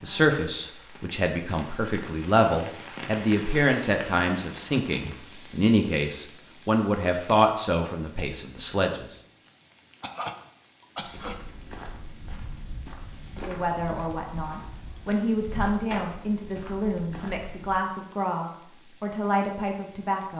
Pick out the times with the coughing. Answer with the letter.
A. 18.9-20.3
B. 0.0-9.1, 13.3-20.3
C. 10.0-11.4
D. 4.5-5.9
C.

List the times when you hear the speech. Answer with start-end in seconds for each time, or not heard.
0.0-9.1, 13.3-20.3.